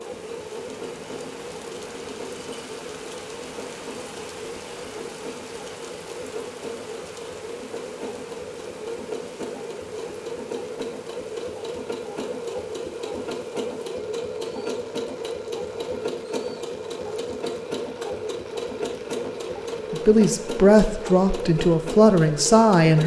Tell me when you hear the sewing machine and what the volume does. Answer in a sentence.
The sewing machine can be heard from 0.0 to 23.0 s, getting louder.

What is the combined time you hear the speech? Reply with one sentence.
You can hear the speech for 3 seconds altogether.